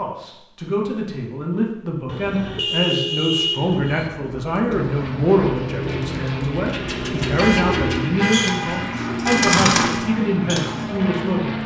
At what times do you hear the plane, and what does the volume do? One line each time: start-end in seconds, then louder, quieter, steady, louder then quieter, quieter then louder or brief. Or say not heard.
4.7-11.6 steady.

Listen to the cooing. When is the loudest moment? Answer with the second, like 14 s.
10 s.